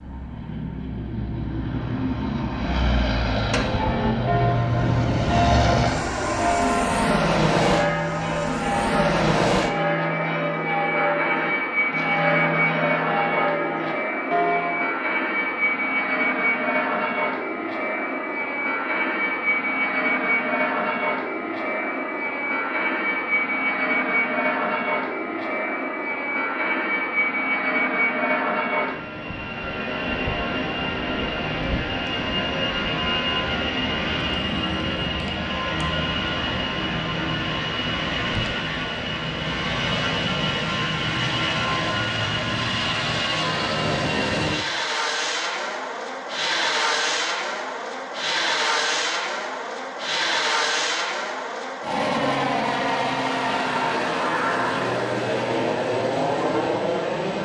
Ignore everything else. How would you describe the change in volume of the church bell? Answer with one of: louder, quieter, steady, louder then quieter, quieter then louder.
steady.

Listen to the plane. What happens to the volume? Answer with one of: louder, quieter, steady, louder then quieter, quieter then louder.
steady.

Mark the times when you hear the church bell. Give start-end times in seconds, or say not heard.
3.5-14.9.